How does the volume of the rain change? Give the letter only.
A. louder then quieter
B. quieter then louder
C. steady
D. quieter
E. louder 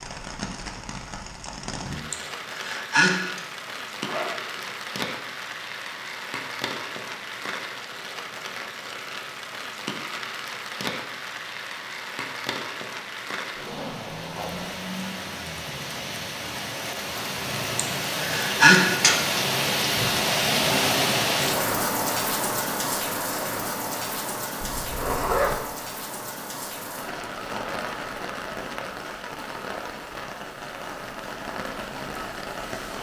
A.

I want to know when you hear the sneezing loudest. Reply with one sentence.
The loudest moment of the sneezing is at 19 seconds.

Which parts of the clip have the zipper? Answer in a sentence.
The zipper can be heard from 4.0 to 4.7 s, from 13.6 to 14.7 s and from 24.6 to 25.6 s.